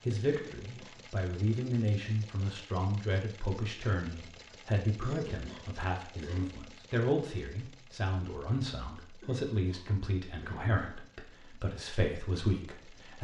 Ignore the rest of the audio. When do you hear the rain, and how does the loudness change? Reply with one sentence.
The rain can't be heard in this clip.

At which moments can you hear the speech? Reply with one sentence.
The speech can be heard from 0.1 to 13.1 s.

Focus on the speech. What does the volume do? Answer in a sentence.
The volume of the speech stays about the same.